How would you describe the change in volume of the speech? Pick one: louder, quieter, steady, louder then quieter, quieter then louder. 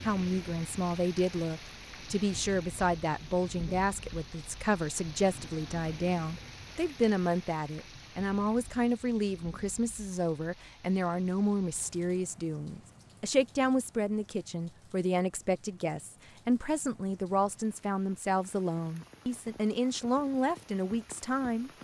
steady.